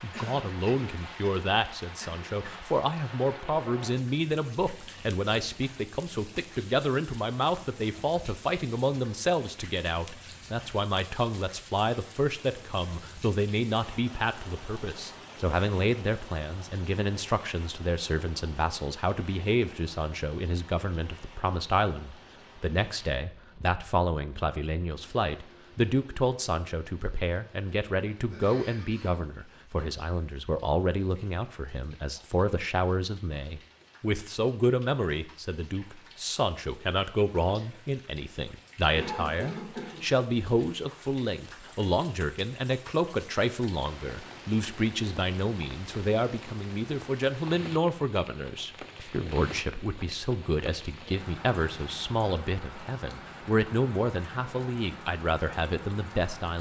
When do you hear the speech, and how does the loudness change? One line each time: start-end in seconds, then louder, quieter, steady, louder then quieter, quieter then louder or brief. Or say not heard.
0.0-56.5 steady.